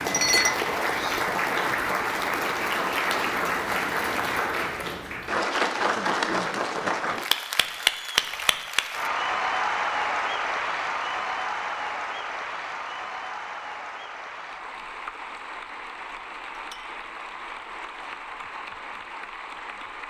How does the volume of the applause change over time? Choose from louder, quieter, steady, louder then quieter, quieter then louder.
quieter.